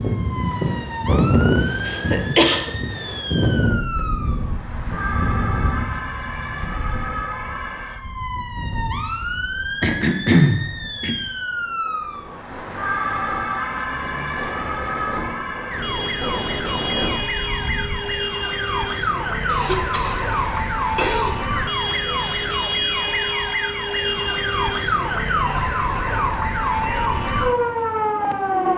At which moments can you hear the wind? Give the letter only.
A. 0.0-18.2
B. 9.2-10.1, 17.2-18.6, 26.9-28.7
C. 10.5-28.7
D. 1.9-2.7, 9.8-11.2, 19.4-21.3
A.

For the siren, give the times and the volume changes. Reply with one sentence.
You can hear the siren from 0.0 to 28.7 s, getting louder.